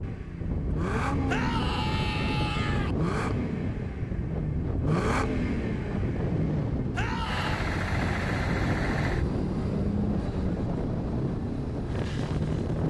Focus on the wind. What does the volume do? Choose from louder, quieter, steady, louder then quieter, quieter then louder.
steady.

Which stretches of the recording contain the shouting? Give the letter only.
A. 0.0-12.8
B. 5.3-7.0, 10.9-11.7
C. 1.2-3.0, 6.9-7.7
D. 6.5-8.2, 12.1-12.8
C.